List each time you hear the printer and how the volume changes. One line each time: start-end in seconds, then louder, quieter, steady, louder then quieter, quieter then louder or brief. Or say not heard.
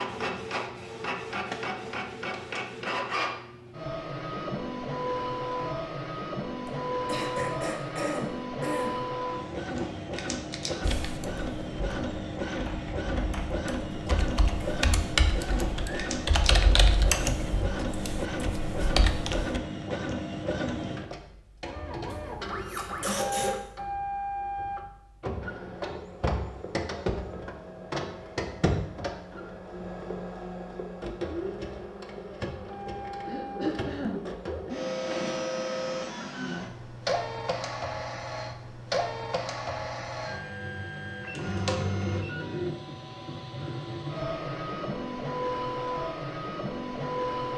0.0-47.5 steady.